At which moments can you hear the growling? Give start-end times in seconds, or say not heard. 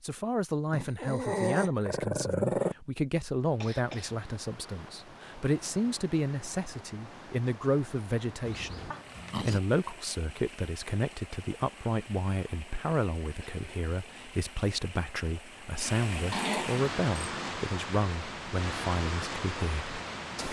0.7-2.8, 8.4-9.6, 16.3-17.6.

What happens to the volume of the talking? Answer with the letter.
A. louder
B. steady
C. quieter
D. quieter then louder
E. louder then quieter
B.